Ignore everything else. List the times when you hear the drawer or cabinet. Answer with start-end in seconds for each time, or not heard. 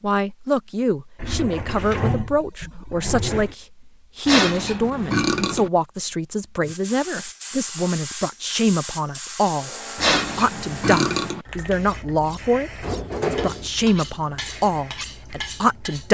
1.1-3.5, 12.8-13.7.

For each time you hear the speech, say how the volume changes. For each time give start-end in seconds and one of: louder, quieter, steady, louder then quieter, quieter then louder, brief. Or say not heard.
0.0-16.1 steady.